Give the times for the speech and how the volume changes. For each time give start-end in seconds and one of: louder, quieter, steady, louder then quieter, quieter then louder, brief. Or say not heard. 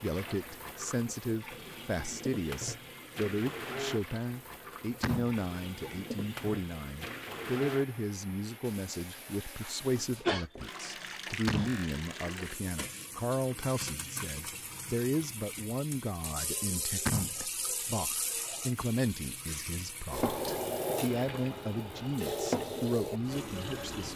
0.0-24.1 steady.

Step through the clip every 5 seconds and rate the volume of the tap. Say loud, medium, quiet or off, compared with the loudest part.
medium, medium, medium, medium, loud.